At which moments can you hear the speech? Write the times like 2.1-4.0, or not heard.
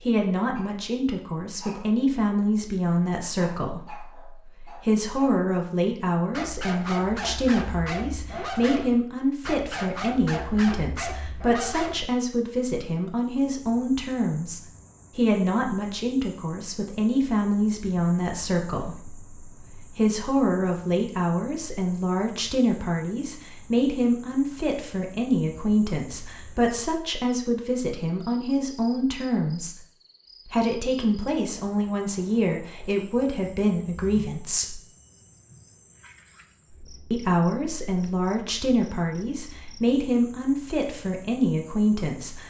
0.0-29.8, 30.4-34.8, 37.1-42.4.